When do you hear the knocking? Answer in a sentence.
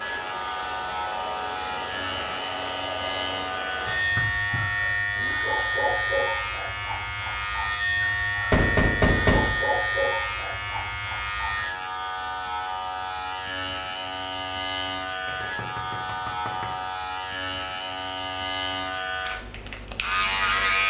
The knocking can be heard from 3.9 to 5.4 s, from 8.5 to 9.6 s and from 15.2 to 16.9 s.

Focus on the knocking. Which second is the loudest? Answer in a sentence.
The volume of the knocking peaks at 9 seconds.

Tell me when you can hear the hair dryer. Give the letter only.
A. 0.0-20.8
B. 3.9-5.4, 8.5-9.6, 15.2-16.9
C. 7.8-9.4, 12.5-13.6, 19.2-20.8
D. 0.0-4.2
D.